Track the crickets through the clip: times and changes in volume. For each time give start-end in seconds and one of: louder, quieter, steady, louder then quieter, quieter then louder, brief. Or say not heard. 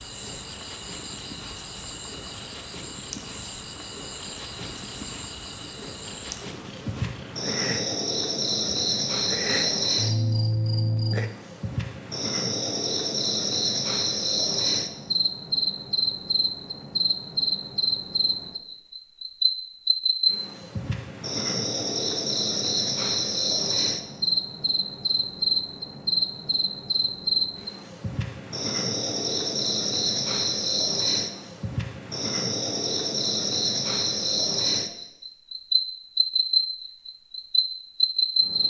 0.0-38.6 louder.